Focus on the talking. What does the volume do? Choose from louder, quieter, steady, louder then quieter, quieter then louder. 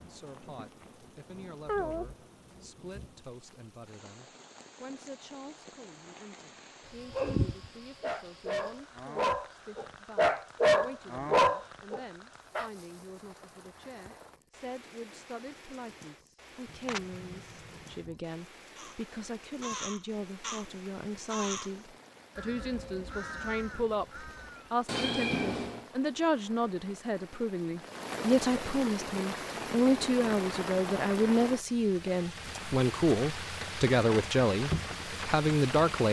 louder.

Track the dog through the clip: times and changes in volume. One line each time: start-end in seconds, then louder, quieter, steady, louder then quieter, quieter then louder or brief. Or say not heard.
7.1-12.7 louder.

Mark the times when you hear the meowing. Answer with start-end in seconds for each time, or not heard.
1.6-2.1, 16.6-18.1, 24.9-25.9.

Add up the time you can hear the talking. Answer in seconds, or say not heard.
36 s.